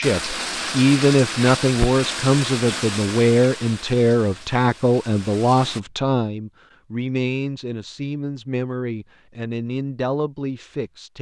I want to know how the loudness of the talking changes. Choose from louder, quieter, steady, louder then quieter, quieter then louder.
quieter.